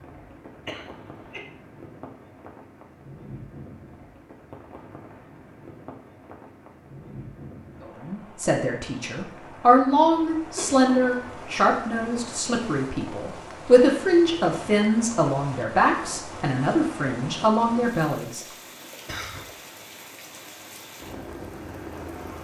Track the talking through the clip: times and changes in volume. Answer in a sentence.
The talking can be heard from 7.8 to 18.4 s, at a steady volume.